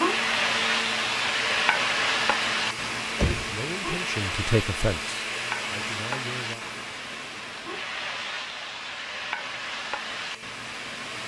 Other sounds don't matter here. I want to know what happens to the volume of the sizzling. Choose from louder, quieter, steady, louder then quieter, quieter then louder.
quieter.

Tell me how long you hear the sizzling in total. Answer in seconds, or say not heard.
11 s.